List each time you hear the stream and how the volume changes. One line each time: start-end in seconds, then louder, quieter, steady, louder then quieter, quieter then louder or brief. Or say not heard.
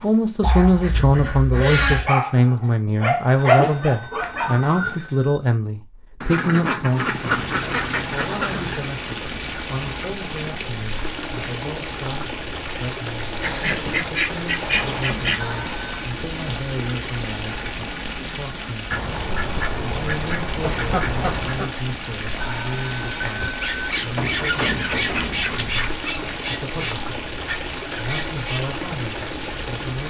6.9-30.0 steady.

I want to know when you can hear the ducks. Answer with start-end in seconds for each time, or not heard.
0.4-2.1, 6.2-8.8, 13.4-15.4, 18.9-21.7, 24.1-26.0.